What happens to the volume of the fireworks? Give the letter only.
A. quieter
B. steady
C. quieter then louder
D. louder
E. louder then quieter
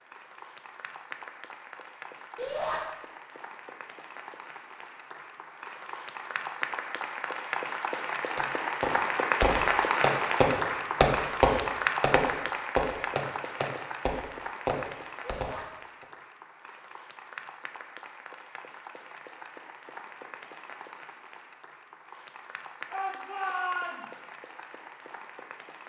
E.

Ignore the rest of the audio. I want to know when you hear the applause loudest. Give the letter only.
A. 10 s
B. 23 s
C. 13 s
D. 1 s
A.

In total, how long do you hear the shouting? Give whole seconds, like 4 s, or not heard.
2 s.